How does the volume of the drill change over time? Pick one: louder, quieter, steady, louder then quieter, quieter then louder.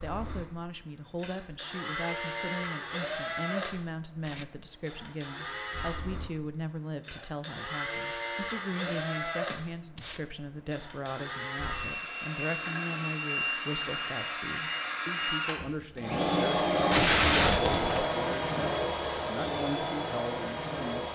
louder.